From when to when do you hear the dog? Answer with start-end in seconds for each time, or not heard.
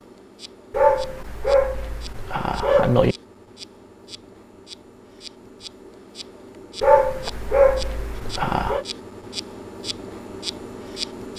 0.7-3.1, 6.8-8.8.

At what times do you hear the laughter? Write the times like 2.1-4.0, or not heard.
not heard.